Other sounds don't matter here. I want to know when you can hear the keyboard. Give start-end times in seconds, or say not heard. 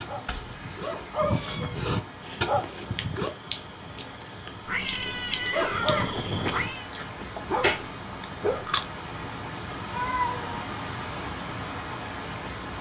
not heard.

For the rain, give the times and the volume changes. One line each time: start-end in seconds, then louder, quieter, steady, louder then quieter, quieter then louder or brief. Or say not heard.
0.0-12.7 louder.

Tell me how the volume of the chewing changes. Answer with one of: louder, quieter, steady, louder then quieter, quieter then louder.
quieter then louder.